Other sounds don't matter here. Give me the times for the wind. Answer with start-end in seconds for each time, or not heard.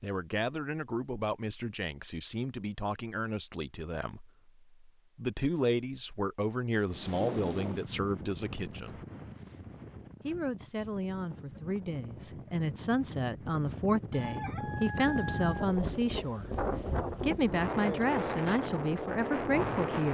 6.8-20.0.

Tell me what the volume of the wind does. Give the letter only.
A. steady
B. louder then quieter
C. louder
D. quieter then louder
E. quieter
D.